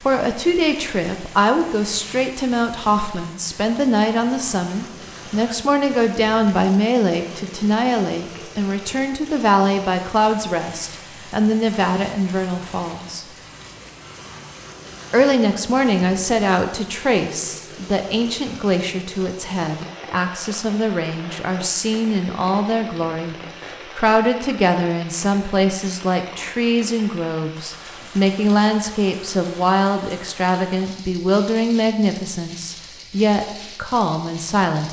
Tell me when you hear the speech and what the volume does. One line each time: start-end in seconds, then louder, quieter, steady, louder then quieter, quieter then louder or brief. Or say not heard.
0.0-13.2 steady
15.1-34.8 steady.